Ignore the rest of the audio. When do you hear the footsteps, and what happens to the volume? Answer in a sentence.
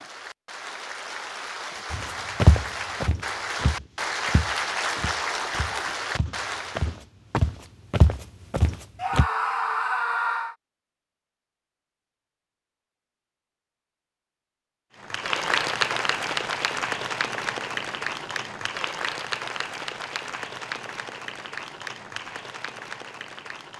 You can hear the footsteps from 1.9 to 9.2 s, getting quieter then louder.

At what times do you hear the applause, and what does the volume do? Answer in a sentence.
The applause can be heard from 0.0 to 7.0 s, getting louder; and from 15.0 to 23.7 s, getting quieter.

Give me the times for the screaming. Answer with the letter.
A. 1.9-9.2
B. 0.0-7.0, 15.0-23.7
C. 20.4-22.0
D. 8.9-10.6
D.